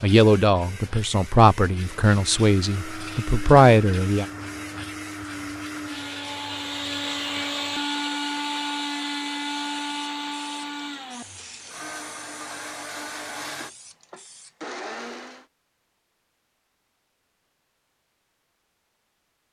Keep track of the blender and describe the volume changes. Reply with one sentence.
The loudness of the blender goes up, then down.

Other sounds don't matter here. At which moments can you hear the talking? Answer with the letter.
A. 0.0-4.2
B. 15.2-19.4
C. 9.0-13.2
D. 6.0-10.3
A.